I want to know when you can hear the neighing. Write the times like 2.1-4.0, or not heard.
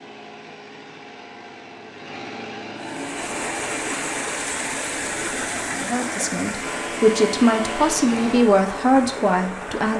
not heard.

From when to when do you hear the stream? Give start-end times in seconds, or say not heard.
2.8-9.9.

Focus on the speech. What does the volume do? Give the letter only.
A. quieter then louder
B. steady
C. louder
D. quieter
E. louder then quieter
C.